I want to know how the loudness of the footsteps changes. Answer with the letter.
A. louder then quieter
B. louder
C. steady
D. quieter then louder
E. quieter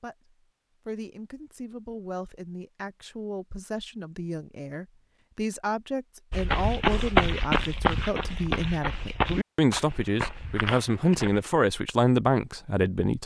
E.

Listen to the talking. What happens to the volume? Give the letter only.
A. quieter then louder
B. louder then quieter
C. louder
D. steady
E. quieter
C.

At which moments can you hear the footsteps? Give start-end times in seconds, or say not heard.
6.3-11.4.